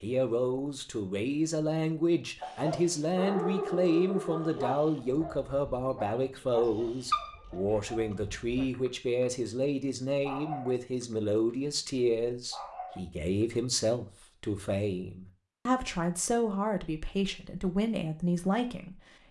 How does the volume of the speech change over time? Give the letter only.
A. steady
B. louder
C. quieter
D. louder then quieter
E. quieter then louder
A.